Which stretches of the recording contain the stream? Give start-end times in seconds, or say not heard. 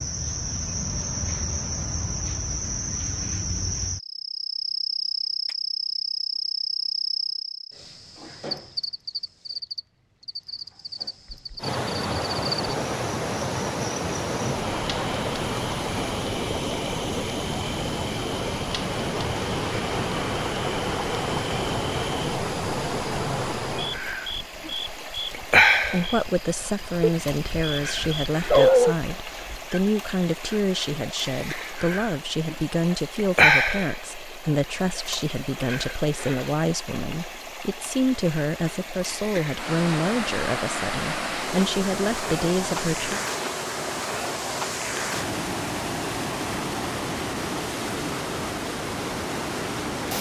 11.6-50.1.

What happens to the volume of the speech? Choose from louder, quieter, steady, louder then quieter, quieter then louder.
steady.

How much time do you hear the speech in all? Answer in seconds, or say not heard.
17 s.